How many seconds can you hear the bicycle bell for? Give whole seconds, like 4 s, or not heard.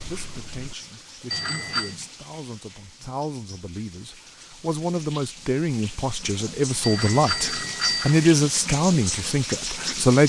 2 s.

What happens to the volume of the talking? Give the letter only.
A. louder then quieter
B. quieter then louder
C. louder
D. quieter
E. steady
C.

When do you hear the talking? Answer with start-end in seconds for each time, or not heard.
0.0-10.2.